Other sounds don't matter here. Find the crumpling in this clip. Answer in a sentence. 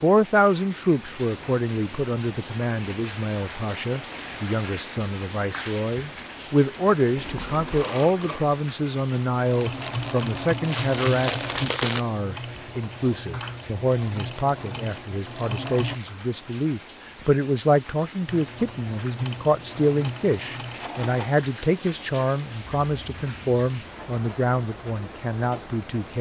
You can hear the crumpling from 9.7 to 12.1 s.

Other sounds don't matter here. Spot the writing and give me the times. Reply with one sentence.
You can't hear the writing here.